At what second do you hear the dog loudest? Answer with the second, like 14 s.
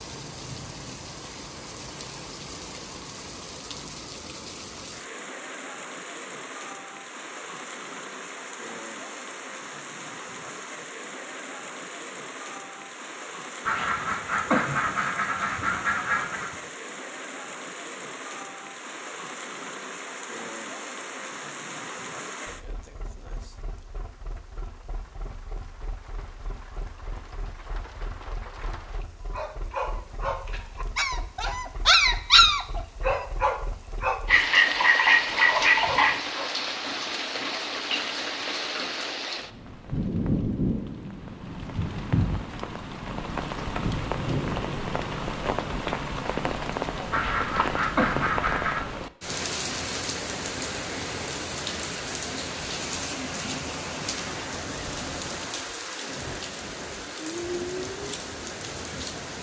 32 s.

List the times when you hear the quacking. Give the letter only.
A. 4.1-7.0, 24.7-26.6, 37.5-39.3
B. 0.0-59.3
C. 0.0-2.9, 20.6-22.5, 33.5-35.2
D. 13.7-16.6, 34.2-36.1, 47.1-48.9
D.